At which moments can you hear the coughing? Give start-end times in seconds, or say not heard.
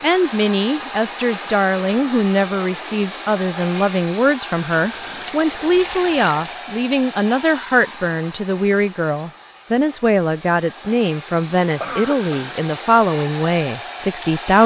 11.8-12.4.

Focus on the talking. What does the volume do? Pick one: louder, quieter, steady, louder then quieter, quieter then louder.
steady.